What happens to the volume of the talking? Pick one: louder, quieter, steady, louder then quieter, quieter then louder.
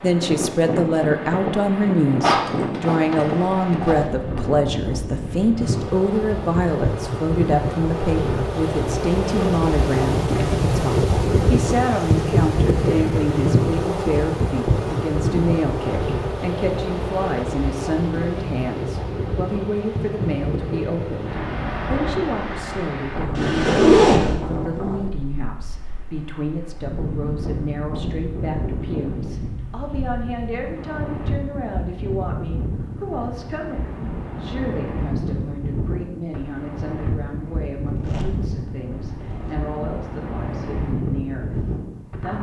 quieter.